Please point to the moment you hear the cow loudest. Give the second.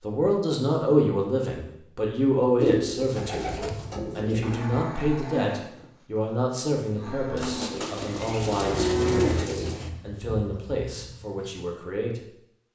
9 s.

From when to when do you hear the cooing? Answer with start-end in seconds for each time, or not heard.
2.5-4.6, 7.3-9.9.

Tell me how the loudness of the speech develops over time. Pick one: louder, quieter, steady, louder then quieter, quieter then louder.
quieter.